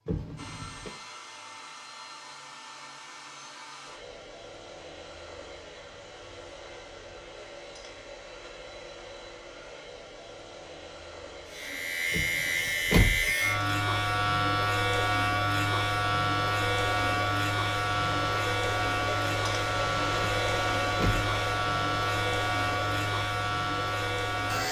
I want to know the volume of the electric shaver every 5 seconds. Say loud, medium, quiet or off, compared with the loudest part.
off, off, loud, loud, loud.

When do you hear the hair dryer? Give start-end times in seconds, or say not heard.
0.1-24.6.